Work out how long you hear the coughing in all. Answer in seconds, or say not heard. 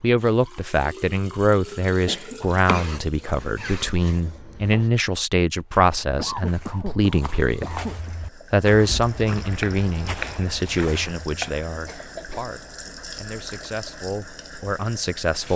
3 s.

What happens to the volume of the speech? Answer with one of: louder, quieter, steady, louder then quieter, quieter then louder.
quieter.